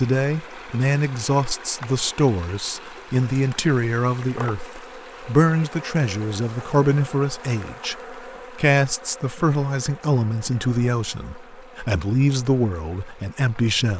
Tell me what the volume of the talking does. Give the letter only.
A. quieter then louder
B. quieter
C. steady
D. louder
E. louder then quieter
C.